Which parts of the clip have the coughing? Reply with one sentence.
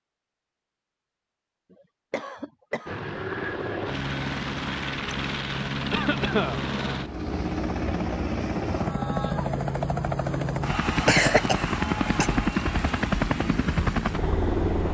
The coughing can be heard from 1.7 to 3.0 s, from 5.9 to 6.6 s and from 11.1 to 12.3 s.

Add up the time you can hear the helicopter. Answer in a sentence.
You can hear the helicopter for 12 seconds altogether.